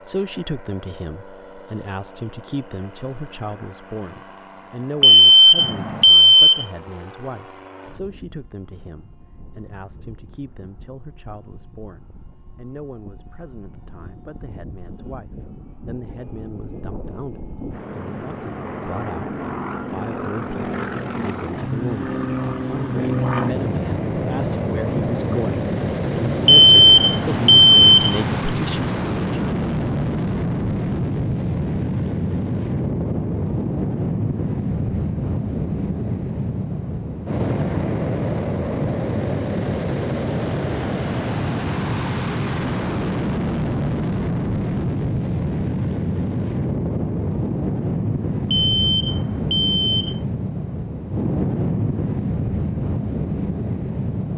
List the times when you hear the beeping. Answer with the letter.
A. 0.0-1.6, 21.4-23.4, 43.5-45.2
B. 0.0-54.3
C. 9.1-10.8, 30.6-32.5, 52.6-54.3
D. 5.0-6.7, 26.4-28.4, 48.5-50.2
D.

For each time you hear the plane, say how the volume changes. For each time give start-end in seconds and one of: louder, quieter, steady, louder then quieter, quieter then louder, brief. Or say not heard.
0.0-54.3 louder.